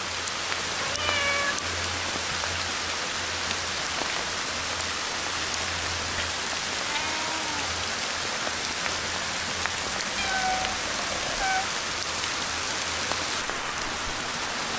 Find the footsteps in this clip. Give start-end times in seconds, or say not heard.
not heard.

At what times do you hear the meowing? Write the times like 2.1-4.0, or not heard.
0.8-1.9, 6.8-7.7, 10.2-11.7.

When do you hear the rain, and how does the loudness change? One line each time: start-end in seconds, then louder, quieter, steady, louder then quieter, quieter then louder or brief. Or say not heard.
0.0-14.7 steady.